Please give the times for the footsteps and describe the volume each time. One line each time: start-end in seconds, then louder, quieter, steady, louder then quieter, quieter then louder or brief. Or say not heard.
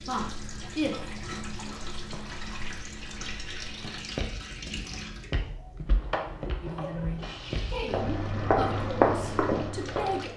0.1-10.3 louder.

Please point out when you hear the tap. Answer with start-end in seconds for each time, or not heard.
0.0-10.3.